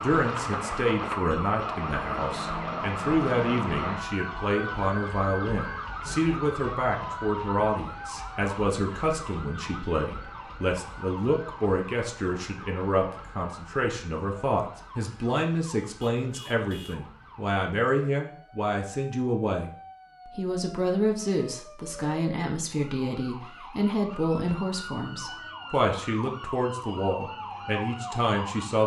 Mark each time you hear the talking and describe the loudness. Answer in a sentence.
The talking can be heard from 0.0 to 28.8 s, at a steady volume.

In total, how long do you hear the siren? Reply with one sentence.
The siren can be heard for 29 seconds in total.